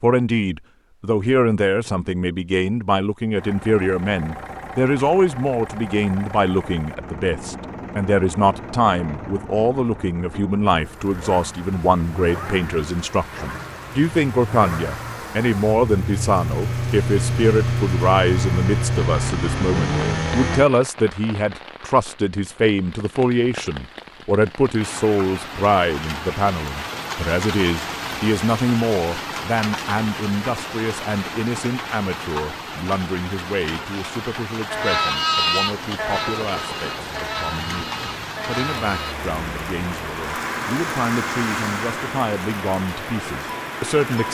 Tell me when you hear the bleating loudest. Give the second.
35 s.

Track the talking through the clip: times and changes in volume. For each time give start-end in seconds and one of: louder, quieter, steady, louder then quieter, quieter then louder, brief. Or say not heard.
0.0-44.2 quieter.